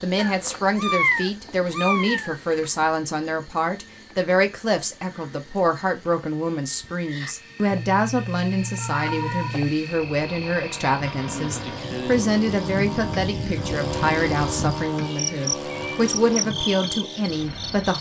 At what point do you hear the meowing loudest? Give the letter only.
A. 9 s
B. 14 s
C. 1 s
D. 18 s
C.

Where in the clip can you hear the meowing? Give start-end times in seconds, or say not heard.
0.1-2.7, 7.7-9.7, 15.0-16.1.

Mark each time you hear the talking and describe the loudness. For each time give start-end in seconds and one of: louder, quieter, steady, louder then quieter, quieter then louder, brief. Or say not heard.
0.0-17.9 steady.